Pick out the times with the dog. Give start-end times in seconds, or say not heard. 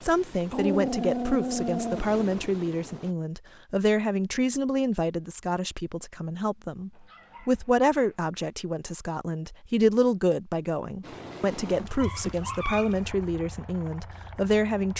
0.5-2.0, 6.9-8.2, 11.7-13.2.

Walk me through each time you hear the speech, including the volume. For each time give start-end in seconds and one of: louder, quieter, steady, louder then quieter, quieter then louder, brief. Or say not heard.
0.0-14.9 steady.